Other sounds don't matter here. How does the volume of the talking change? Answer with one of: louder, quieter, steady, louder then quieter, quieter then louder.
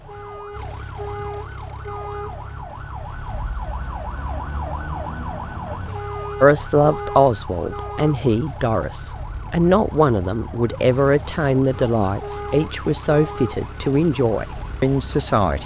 steady.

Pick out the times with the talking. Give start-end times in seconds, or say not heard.
6.4-15.6.